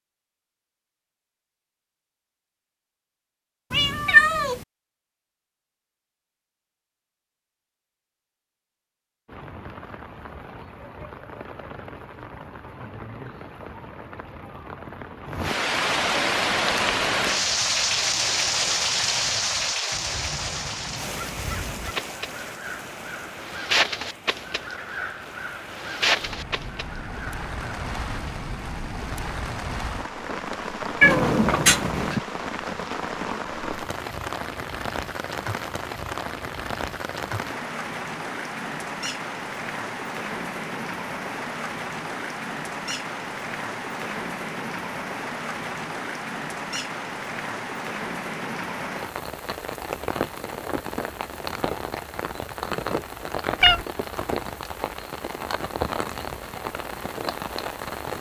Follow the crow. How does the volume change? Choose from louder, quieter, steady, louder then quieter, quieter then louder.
louder.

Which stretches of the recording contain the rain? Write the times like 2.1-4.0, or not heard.
9.2-58.1.